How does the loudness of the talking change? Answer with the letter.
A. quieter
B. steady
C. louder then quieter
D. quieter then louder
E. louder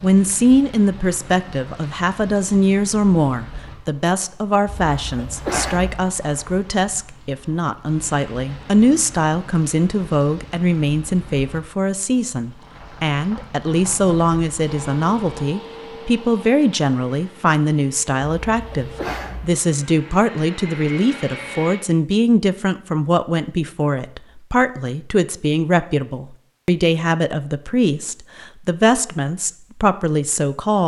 B.